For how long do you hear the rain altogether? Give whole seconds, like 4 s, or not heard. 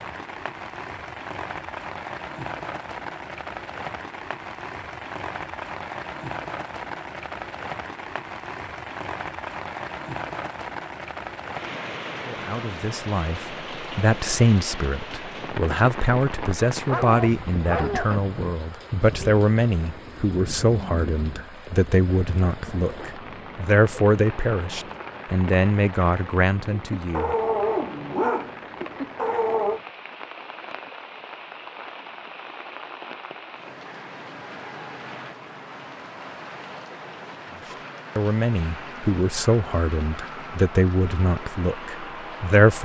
43 s.